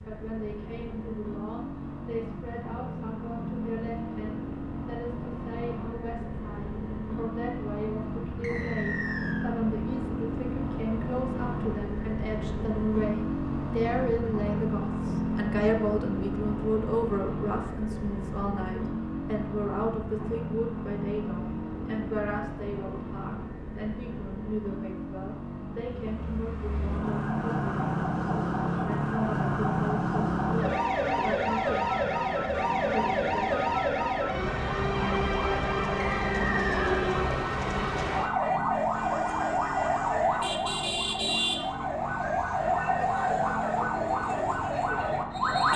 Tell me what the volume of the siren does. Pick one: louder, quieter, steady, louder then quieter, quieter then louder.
steady.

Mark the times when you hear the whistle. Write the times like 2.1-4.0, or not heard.
8.4-9.4, 36.0-37.0.